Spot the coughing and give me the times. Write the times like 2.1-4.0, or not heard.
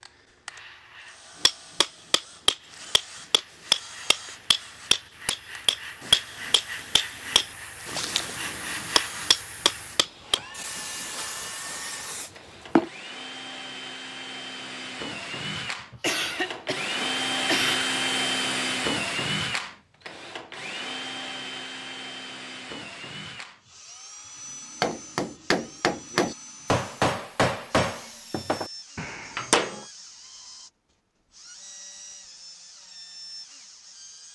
15.9-17.9.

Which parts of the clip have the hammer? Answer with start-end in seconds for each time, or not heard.
1.4-10.4, 24.8-29.9.